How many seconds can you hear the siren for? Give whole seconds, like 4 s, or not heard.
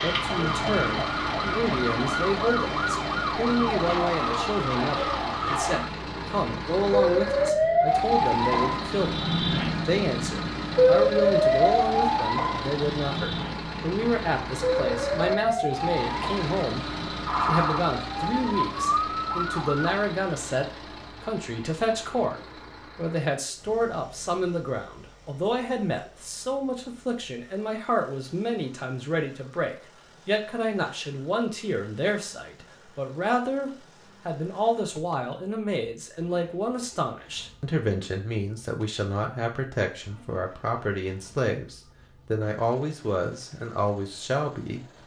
20 s.